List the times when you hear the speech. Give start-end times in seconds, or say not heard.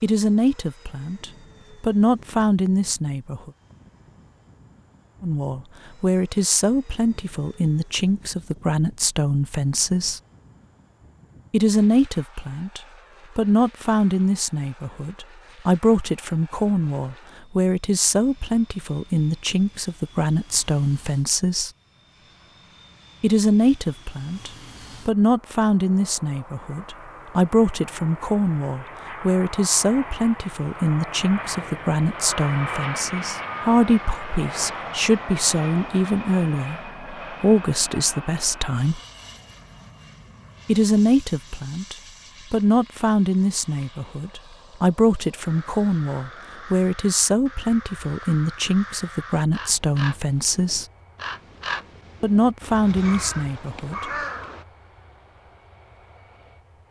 0.0-3.5, 5.2-10.2, 11.5-21.7, 23.2-39.0, 40.6-50.9, 52.2-54.1.